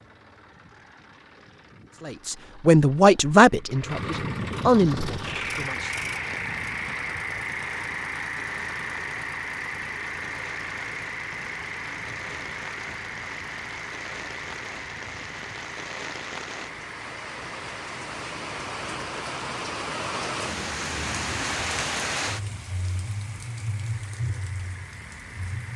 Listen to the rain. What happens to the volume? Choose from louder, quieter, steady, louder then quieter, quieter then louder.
louder.